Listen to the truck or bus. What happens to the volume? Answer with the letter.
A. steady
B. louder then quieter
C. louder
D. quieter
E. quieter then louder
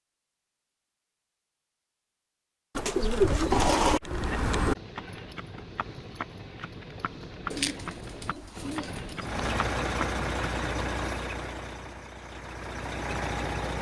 E.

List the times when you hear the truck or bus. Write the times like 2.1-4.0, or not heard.
9.2-13.7.